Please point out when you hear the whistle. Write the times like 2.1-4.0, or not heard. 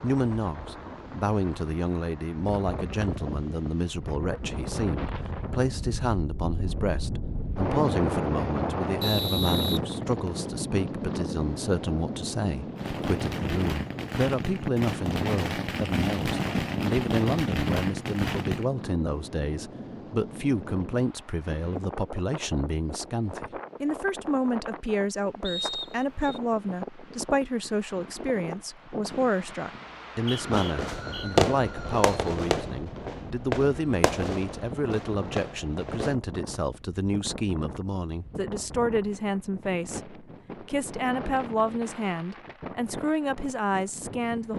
9.0-10.5, 25.4-26.4, 30.1-31.2.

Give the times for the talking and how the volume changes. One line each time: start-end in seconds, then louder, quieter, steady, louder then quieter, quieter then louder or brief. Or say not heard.
0.0-44.5 steady.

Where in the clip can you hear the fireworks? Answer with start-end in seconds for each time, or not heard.
12.8-18.6, 30.2-36.1.